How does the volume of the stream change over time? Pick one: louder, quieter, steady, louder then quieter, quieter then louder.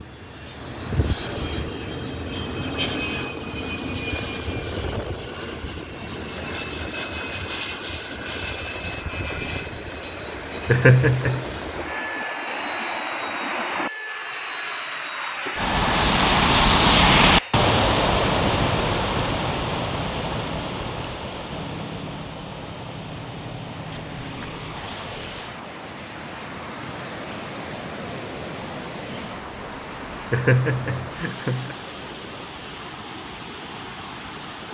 louder then quieter.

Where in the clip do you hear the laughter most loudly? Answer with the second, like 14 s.
11 s.